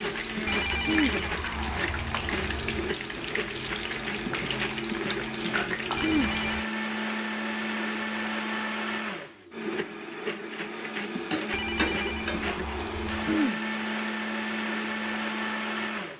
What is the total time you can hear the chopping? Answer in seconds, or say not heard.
not heard.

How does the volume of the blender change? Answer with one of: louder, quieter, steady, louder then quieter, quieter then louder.
steady.